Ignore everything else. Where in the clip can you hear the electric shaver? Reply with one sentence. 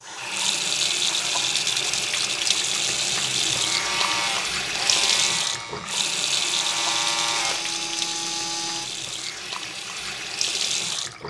You can hear the electric shaver from 3.6 to 9.0 s.